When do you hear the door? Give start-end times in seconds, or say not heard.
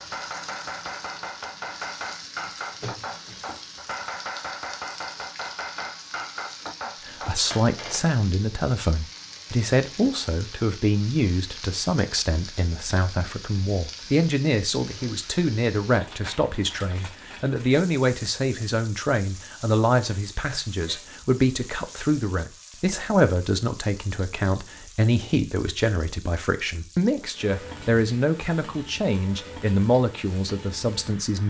not heard.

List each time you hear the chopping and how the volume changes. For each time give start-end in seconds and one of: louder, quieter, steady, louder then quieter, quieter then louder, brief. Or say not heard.
0.0-7.4 steady.